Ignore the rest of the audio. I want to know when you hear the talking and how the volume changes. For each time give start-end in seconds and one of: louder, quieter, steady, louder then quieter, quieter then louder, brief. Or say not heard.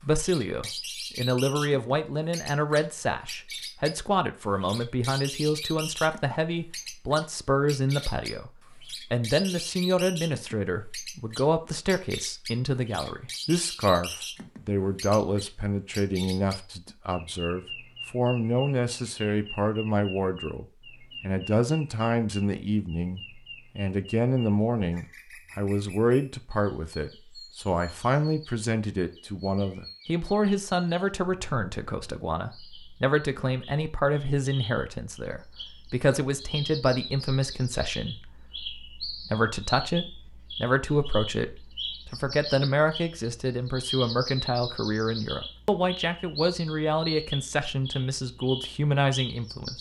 0.0-49.7 steady.